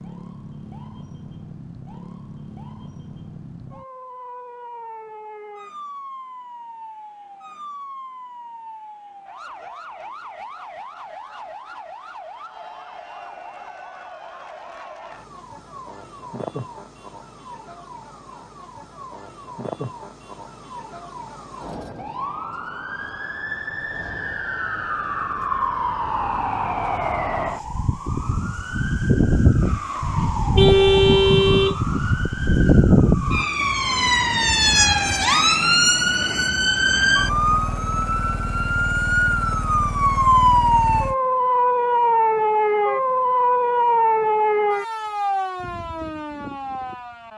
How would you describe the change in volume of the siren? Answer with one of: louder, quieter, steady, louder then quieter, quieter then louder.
louder.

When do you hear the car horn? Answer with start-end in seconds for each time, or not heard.
30.6-31.8.